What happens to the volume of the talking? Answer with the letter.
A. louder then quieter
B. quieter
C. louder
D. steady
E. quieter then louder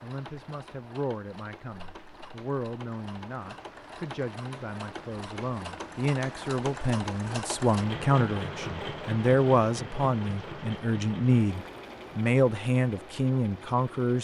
C.